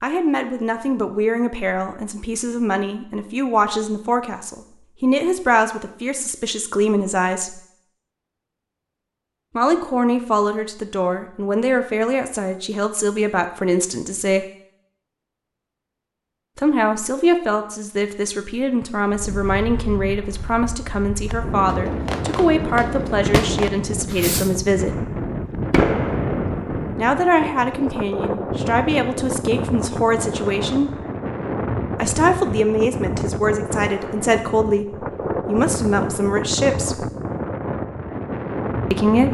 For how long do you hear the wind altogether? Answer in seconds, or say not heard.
20 s.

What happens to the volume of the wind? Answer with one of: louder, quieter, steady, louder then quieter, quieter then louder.
steady.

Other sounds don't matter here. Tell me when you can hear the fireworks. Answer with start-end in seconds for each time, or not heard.
21.3-26.9.